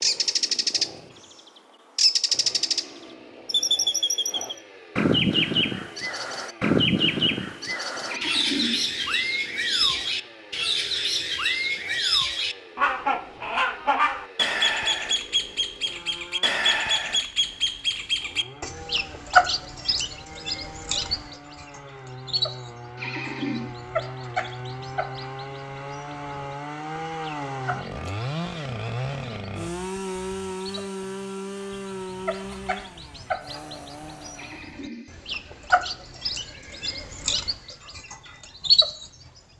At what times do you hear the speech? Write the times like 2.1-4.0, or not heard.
not heard.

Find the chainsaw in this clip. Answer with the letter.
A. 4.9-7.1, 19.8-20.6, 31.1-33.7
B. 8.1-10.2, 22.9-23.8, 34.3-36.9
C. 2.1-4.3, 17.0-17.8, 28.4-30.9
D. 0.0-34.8
D.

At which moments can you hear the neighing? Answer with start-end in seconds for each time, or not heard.
8.1-10.2, 22.9-23.8, 34.3-36.9.